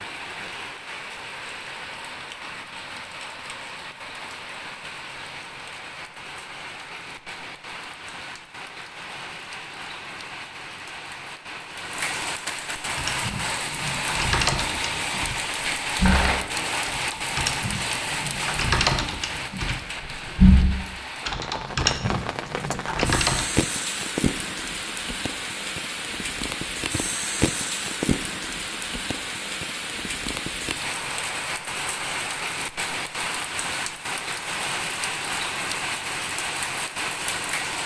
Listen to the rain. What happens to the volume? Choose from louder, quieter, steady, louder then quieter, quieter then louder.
louder.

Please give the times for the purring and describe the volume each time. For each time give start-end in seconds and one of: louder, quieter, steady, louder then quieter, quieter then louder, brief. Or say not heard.
not heard.